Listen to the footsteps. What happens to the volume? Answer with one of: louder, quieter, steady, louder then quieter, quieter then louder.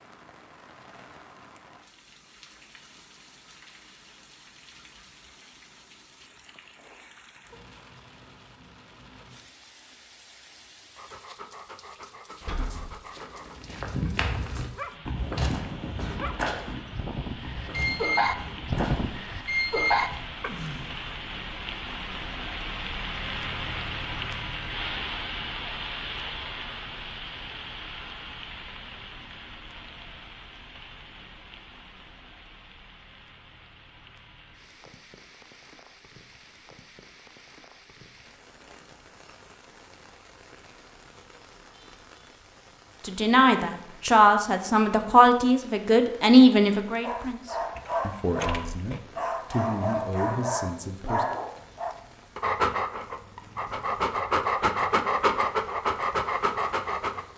quieter.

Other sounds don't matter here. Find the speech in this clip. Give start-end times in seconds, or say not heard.
43.0-51.2.